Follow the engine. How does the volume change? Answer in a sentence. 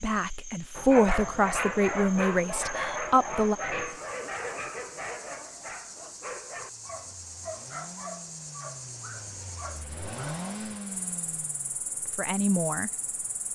The volume of the engine goes up.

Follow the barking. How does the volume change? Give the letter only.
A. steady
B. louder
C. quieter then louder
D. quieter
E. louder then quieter
D.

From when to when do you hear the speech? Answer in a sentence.
You can hear the speech from 0.0 to 3.5 s and from 12.2 to 12.9 s.